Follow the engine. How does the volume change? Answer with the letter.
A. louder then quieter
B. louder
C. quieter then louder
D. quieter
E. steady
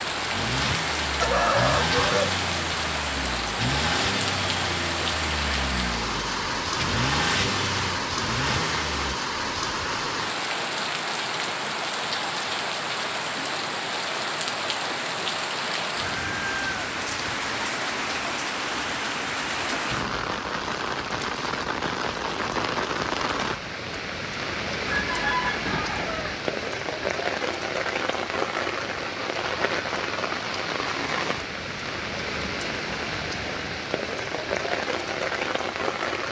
E.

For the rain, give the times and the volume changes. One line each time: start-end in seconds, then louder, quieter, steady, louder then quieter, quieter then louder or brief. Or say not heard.
0.0-36.2 steady.